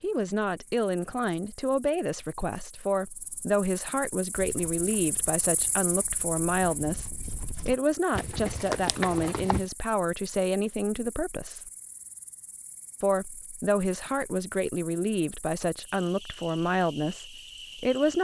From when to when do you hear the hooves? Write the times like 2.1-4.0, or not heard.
4.3-9.7.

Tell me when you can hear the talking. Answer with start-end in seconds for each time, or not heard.
0.0-11.7, 13.0-18.1.